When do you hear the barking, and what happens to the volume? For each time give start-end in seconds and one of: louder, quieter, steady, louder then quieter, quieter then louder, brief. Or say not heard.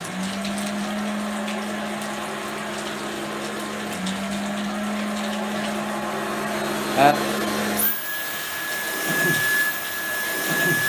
not heard.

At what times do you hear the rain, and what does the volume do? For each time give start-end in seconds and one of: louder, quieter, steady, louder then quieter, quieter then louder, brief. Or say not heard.
0.0-10.7 louder then quieter.